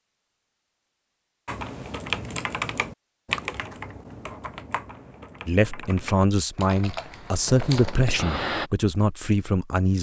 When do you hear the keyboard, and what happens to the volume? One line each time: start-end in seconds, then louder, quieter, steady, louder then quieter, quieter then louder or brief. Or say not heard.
1.4-8.7 quieter then louder.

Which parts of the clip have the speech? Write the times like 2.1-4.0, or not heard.
5.5-9.9.